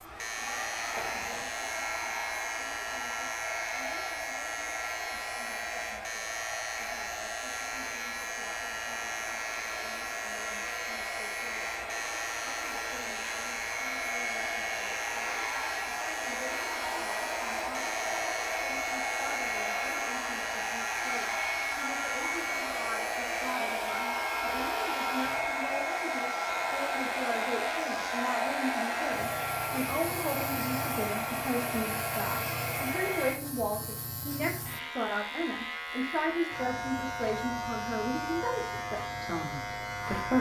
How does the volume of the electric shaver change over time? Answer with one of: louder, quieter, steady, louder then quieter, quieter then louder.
steady.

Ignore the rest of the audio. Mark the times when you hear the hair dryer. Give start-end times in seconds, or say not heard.
0.0-33.4.